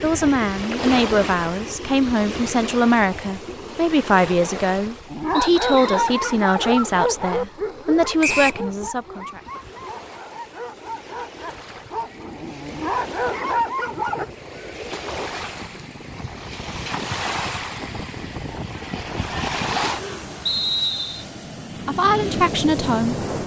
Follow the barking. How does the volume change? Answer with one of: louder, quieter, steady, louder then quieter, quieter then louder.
quieter then louder.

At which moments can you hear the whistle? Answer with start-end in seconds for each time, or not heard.
5.3-6.2, 8.2-8.7, 20.4-21.2.